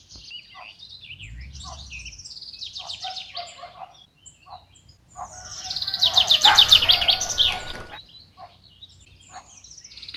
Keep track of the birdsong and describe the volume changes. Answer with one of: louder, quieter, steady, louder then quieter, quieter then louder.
louder then quieter.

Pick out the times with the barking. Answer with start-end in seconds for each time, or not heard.
6.4-8.0.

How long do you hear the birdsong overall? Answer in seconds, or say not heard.
10 s.